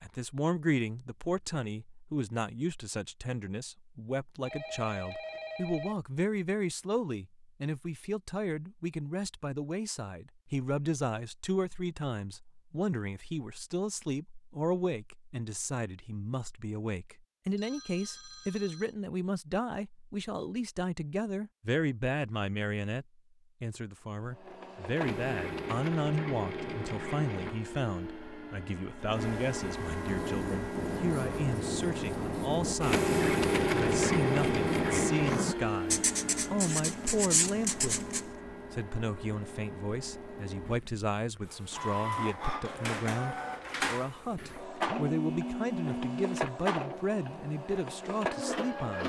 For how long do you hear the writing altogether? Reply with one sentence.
You can hear the writing for 8 seconds altogether.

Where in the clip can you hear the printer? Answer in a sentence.
You can hear the printer from 24.2 to 49.0 s.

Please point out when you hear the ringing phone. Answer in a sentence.
The ringing phone can be heard from 4.5 to 6.0 s, from 17.6 to 18.9 s and from 44.9 to 46.4 s.